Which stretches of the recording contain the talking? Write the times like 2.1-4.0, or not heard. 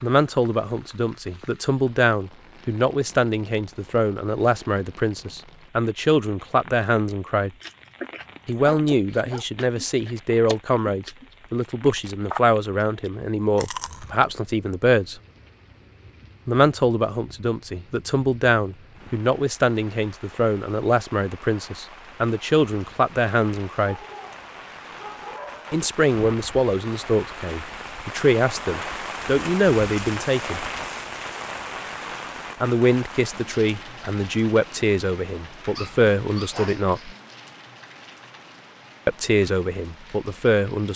0.0-7.5, 8.4-15.2, 16.4-23.9, 25.7-30.6, 32.6-37.1, 39.0-40.9.